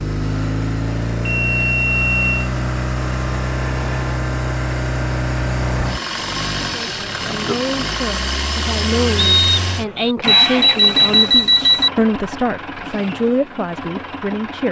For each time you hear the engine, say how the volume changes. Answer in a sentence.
The engine can be heard from 0.0 to 14.6 s, getting quieter.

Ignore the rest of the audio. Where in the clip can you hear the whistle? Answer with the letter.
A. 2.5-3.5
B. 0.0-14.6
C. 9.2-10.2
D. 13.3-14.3
C.